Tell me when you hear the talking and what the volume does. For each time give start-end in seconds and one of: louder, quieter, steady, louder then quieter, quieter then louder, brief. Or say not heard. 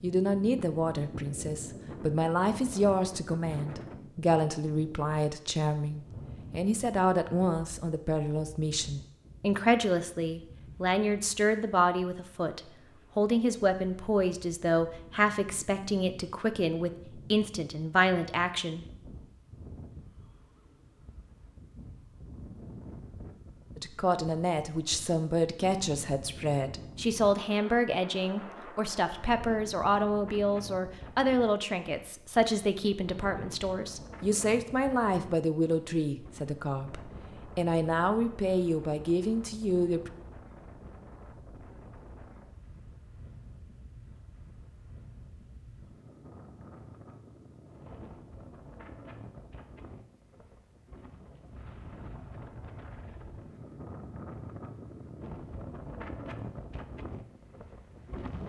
0.0-18.9 steady
23.8-40.1 steady.